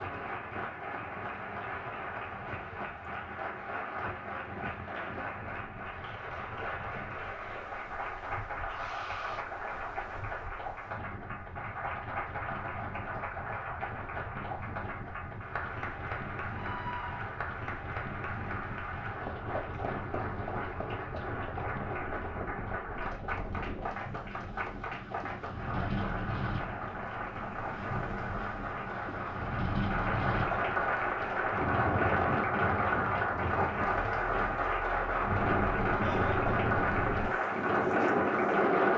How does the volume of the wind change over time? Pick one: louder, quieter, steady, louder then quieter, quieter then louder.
louder.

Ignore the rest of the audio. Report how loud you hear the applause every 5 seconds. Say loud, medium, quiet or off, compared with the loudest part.
medium, medium, medium, medium, medium, medium, loud, loud.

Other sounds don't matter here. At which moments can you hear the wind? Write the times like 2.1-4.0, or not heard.
0.0-38.9.